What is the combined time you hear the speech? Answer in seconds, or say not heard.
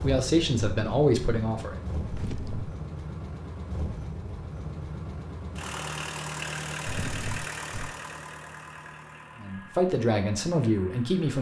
4 s.